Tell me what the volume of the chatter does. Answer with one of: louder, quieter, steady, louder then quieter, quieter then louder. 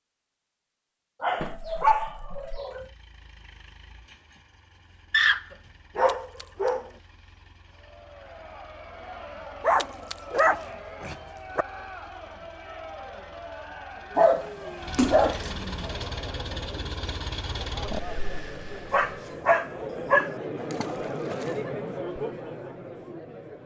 louder.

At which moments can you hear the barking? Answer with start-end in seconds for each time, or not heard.
1.2-2.9, 5.1-6.9, 9.6-11.7, 14.2-15.9, 18.9-20.4.